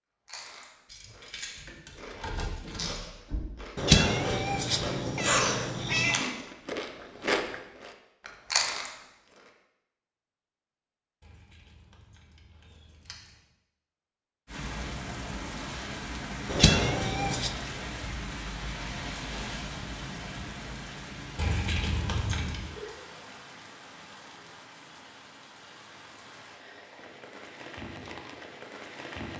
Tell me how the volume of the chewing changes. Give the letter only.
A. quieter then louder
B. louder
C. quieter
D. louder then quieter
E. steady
B.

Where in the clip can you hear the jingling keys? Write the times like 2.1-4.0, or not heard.
0.8-3.5, 11.2-13.4, 21.4-22.6.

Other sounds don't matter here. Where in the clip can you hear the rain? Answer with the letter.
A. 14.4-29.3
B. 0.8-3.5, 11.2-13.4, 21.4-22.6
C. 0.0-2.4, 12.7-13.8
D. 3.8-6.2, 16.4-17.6
A.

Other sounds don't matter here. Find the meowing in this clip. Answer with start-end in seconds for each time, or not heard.
3.8-6.2, 16.4-17.6.